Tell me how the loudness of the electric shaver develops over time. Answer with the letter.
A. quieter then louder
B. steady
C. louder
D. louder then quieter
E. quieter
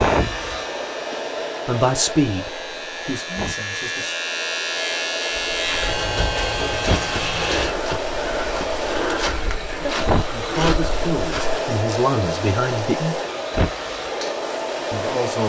C.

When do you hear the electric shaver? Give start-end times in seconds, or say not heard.
0.0-7.8.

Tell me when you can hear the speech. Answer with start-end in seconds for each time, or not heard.
1.6-4.2, 10.3-13.2, 14.9-15.4.